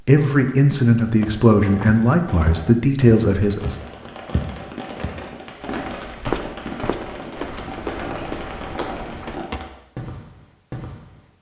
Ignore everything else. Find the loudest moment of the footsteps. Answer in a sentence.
The loudest moment of the footsteps is at 6 seconds.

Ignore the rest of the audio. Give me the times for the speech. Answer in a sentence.
The speech can be heard from 0.1 to 3.8 s.